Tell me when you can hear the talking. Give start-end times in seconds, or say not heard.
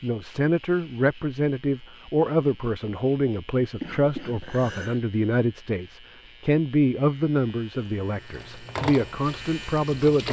0.0-10.2.